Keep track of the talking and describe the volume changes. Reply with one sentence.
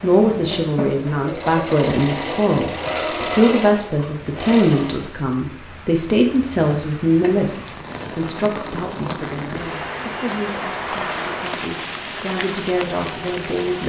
The volume of the talking goes down.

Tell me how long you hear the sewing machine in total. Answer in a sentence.
The sewing machine can be heard for 12 seconds in total.